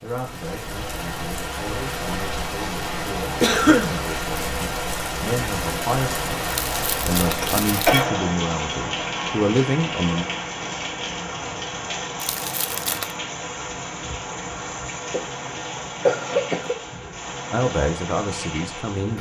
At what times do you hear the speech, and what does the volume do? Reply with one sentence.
The speech can be heard from 0.0 to 10.2 s, getting louder; and briefly from 17.5 to 19.1 s.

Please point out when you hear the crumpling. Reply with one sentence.
You can hear the crumpling from 6.5 to 8.0 s and from 12.2 to 13.2 s.